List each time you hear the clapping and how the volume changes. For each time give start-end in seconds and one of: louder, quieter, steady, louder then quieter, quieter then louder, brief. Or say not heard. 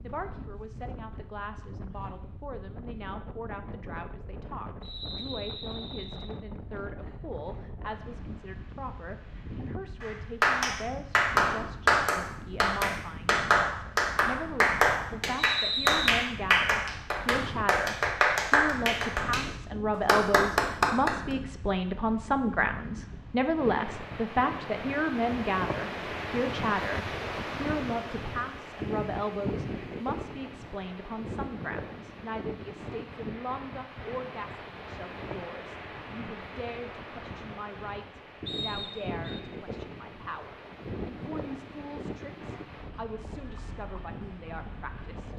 10.0-21.4 steady.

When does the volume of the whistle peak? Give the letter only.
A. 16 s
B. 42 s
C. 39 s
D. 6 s
A.